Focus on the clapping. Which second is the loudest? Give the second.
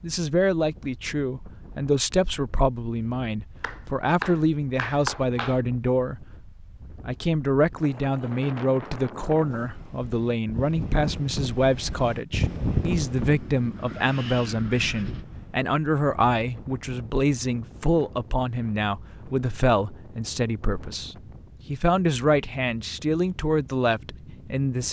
5 s.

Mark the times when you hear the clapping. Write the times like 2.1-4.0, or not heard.
3.6-5.6.